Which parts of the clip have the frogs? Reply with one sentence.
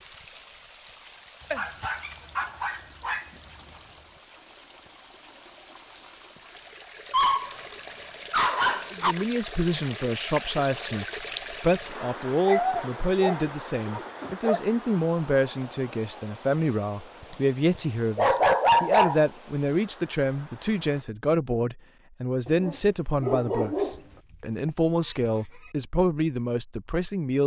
The frogs can't be heard in this clip.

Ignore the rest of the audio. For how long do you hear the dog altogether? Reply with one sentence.
The dog can be heard for 9 seconds in total.